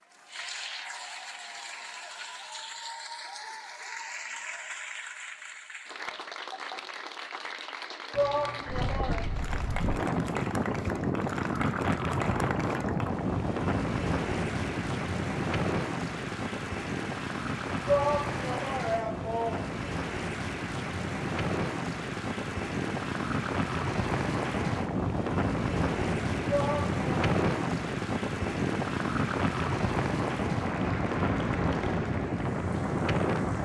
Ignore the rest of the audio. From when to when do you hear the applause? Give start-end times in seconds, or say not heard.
0.0-33.5.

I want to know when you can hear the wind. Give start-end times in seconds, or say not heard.
8.7-33.5.